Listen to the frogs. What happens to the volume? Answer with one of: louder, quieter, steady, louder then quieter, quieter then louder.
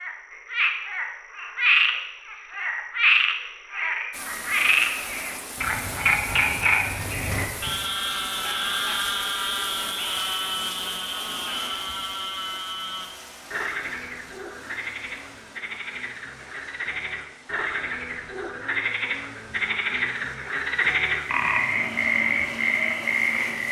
quieter then louder.